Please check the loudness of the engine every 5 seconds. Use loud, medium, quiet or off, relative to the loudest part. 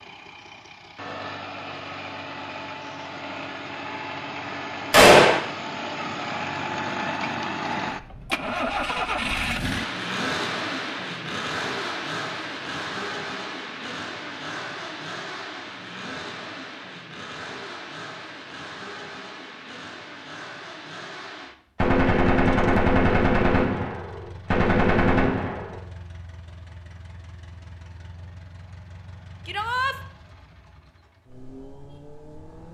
medium, loud, loud, medium, quiet, quiet, quiet.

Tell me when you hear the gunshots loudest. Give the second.
5 s.